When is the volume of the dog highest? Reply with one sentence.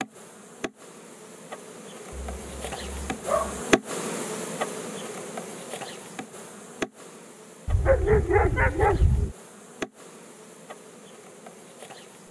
The volume of the dog peaks at 8 seconds.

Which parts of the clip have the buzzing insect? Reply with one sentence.
The buzzing insect can be heard from 0.0 to 12.2 s.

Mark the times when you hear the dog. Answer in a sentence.
The dog can be heard from 2.1 to 3.6 s and from 7.7 to 9.3 s.